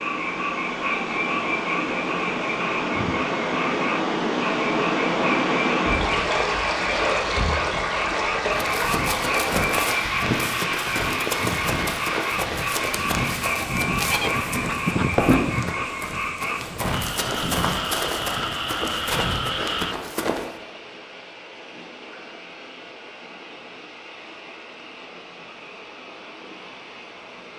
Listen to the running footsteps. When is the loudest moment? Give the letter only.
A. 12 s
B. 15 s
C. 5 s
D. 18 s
B.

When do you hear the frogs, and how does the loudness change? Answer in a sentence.
The frogs can be heard from 0.0 to 19.9 s, at a steady volume.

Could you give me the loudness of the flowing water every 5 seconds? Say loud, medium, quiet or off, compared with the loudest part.
loud, loud, medium, quiet, quiet, quiet.